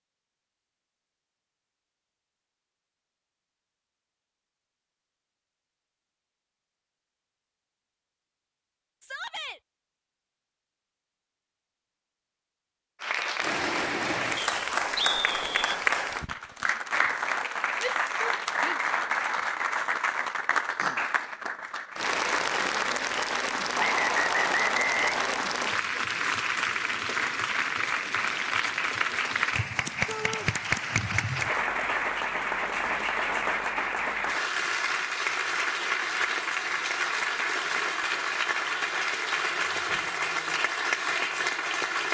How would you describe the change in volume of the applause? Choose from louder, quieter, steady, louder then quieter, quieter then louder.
steady.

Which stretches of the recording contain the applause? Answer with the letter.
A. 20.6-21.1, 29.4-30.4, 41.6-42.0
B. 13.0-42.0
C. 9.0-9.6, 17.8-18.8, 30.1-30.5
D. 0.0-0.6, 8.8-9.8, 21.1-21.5
B.